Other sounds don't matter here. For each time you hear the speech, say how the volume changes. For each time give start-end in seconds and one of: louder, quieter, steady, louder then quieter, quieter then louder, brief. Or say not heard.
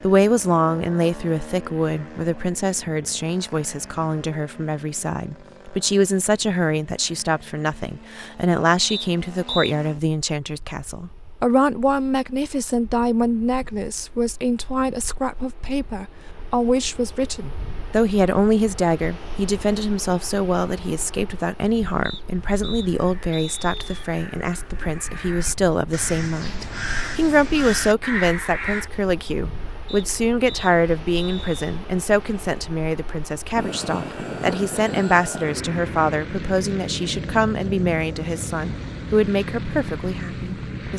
0.0-40.9 steady.